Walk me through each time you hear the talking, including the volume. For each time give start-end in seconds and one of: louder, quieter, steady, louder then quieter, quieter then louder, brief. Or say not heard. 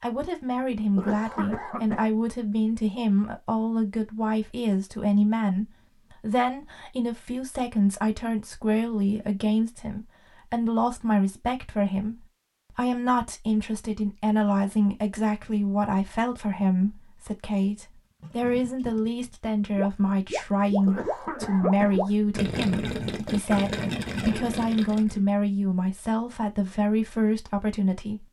0.0-28.2 steady.